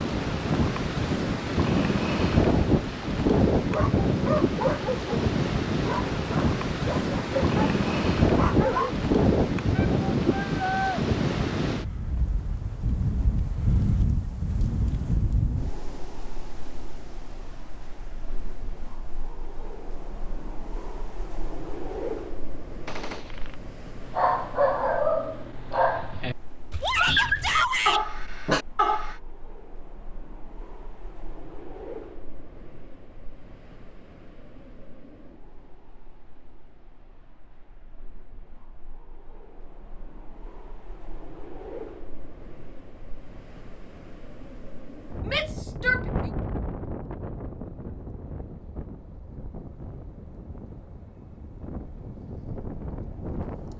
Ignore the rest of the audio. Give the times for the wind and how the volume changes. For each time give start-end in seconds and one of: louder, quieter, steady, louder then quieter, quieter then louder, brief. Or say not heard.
0.0-53.7 quieter then louder.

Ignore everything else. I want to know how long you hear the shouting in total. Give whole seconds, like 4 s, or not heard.
3 s.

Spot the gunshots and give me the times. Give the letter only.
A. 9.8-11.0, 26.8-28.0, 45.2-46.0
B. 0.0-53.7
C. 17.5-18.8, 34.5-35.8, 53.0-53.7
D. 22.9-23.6
D.